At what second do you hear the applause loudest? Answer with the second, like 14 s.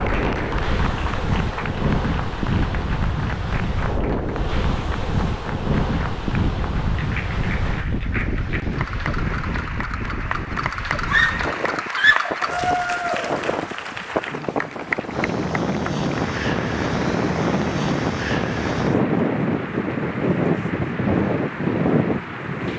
13 s.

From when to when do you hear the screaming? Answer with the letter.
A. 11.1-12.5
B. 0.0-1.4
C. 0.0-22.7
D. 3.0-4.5
A.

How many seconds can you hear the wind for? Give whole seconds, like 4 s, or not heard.
23 s.